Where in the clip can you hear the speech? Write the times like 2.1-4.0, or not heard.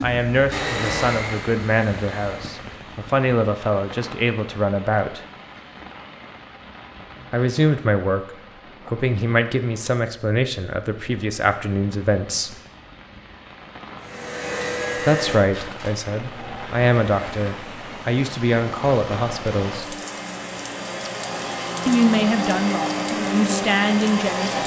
0.0-5.2, 7.3-12.6, 15.0-19.9, 21.9-24.6.